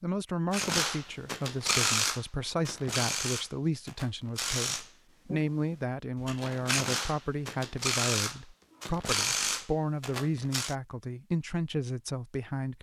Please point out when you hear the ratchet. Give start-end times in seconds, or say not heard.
0.5-5.4, 6.2-10.8.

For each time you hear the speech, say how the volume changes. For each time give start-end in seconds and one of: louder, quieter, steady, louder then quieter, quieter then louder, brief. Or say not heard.
0.0-12.7 steady.